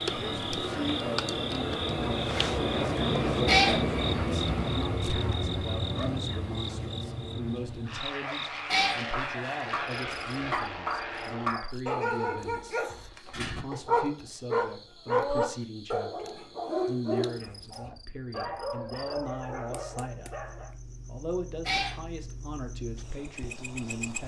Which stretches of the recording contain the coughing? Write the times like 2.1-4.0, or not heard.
not heard.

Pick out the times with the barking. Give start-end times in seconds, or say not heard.
9.1-20.7.